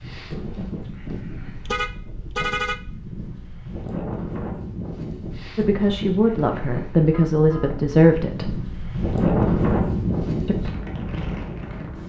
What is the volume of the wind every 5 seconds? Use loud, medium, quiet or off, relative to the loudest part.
medium, loud, loud.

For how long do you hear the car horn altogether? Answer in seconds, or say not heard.
2 s.